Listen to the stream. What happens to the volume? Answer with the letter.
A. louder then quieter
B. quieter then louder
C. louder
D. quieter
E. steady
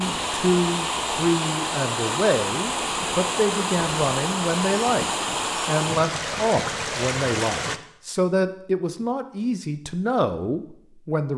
E.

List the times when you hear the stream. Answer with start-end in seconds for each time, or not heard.
0.0-7.8.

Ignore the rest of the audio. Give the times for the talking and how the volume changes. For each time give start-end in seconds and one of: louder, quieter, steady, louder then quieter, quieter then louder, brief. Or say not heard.
0.0-11.3 steady.